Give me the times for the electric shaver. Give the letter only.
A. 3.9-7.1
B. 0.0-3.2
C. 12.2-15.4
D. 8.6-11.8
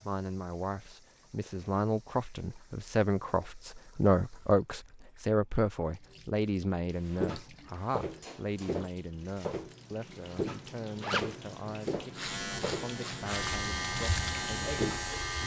C.